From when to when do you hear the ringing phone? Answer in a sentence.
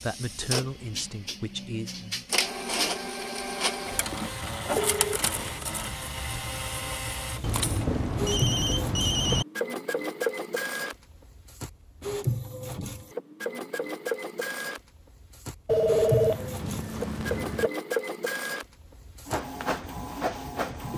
You can hear the ringing phone from 4.5 to 5.4 s, from 7.4 to 9.4 s and from 15.7 to 17.7 s.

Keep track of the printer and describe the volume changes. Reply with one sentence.
The loudness of the printer stays about the same.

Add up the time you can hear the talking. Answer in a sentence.
You can hear the talking for 2 seconds altogether.